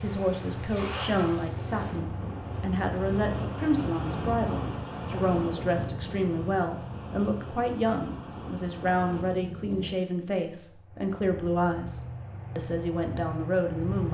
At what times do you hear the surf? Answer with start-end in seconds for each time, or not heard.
0.0-9.2.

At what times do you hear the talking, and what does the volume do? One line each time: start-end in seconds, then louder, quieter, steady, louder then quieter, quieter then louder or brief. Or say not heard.
0.0-14.0 steady.